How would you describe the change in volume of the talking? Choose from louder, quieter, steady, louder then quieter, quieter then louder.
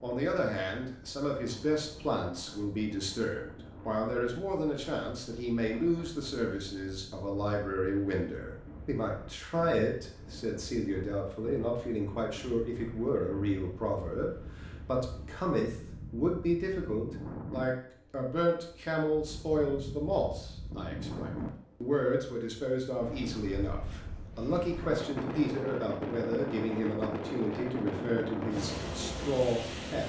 steady.